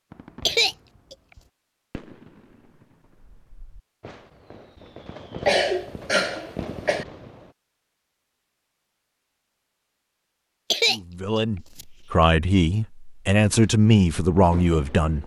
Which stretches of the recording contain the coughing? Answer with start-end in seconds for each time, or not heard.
0.5-1.1, 5.5-7.0, 10.7-11.8.